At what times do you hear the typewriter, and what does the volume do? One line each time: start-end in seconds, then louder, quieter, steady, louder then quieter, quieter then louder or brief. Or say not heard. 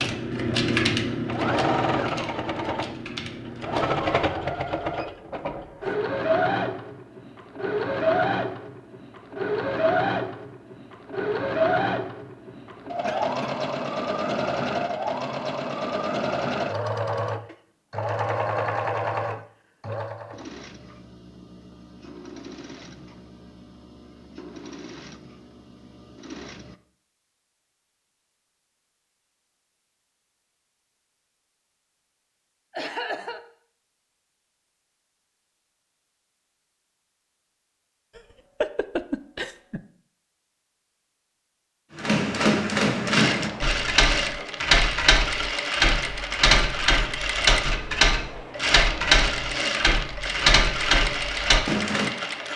0.0-4.0 quieter
42.0-52.1 steady.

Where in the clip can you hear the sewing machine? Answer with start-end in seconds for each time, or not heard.
0.0-26.8, 43.0-52.5.